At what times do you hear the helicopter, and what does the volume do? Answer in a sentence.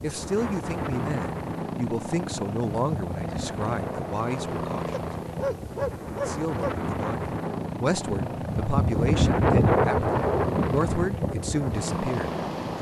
You can hear the helicopter from 0.0 to 12.7 s, at a steady volume.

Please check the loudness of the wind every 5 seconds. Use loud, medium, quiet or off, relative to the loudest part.
medium, loud, loud.